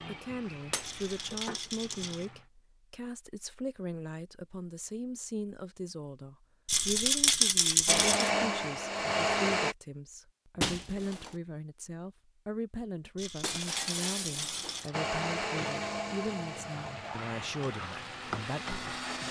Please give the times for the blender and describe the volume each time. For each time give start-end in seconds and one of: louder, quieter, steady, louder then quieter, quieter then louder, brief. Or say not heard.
7.8-9.8 brief
14.9-19.2 quieter then louder.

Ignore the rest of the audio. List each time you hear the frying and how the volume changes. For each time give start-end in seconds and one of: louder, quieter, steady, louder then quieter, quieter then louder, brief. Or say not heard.
0.0-2.5 brief
14.4-19.2 quieter then louder.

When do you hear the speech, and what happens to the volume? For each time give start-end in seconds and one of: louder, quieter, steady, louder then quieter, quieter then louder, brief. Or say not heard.
0.1-18.8 steady.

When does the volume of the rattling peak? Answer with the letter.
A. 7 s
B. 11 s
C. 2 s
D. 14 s
A.